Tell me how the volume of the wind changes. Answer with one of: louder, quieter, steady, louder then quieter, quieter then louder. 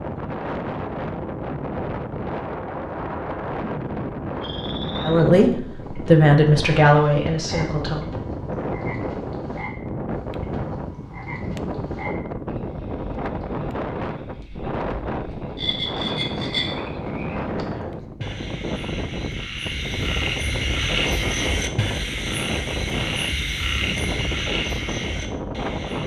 steady.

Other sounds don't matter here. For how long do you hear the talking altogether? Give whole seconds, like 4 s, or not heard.
3 s.